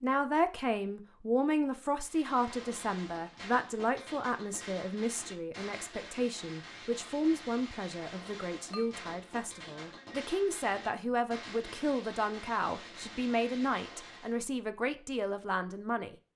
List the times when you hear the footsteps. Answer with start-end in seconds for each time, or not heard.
not heard.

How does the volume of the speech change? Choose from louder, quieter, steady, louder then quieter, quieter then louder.
steady.